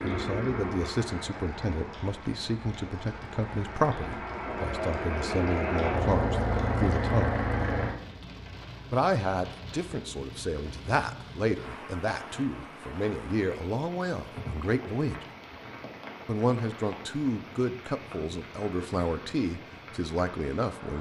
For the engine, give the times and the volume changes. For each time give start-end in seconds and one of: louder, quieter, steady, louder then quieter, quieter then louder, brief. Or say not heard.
0.0-8.0 quieter then louder.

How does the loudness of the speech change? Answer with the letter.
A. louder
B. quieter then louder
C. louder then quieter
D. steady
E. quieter
D.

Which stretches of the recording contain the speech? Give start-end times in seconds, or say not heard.
0.0-7.5, 8.9-15.2, 16.2-20.9.